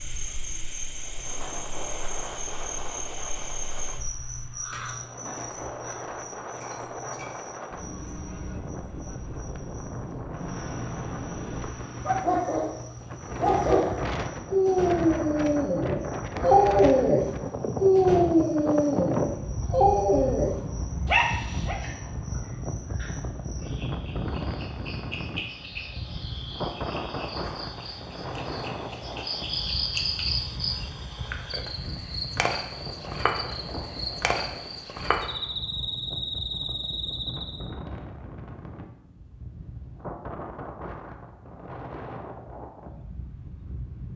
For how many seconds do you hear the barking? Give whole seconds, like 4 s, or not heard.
10 s.